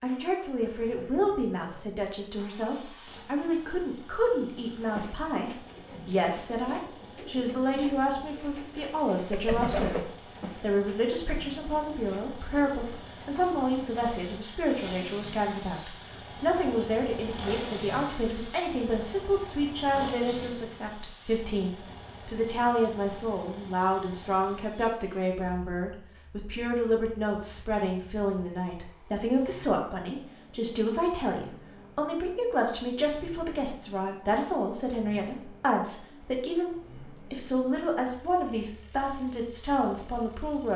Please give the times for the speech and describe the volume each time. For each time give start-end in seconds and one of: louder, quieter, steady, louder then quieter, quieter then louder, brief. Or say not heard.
0.0-40.7 steady.